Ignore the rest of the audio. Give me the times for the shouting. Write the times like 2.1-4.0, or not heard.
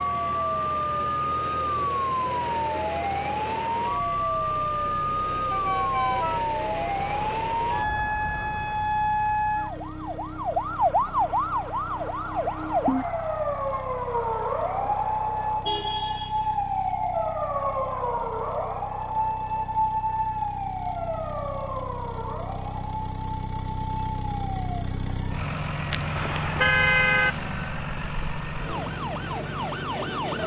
not heard.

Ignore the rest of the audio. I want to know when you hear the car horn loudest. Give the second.
27 s.